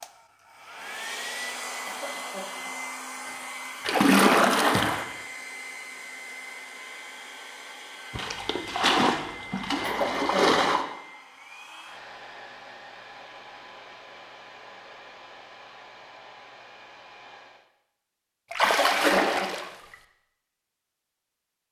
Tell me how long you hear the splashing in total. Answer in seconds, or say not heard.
5 s.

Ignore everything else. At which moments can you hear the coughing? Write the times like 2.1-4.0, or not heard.
1.9-2.7, 9.8-10.6, 18.6-19.5.